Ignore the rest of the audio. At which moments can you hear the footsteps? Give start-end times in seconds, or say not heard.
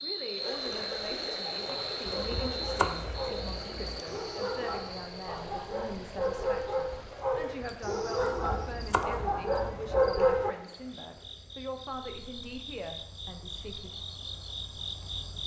not heard.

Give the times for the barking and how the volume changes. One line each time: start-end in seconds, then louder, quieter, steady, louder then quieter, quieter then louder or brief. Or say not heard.
1.3-10.6 louder.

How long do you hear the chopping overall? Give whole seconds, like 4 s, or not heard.
4 s.